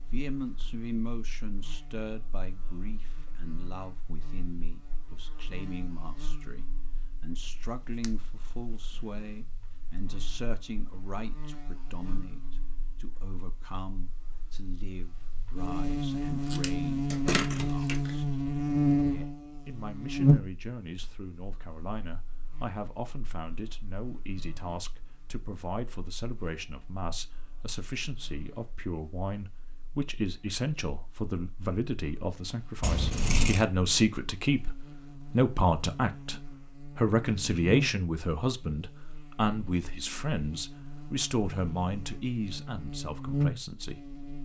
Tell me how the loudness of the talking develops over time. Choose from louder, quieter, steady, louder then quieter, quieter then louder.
louder.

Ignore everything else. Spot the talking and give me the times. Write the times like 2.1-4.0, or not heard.
0.0-44.0.